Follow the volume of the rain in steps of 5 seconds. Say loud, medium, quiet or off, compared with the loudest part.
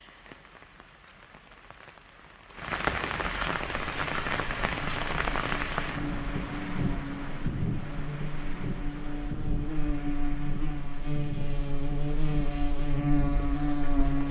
loud, loud, medium.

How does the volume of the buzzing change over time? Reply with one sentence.
The volume of the buzzing goes up.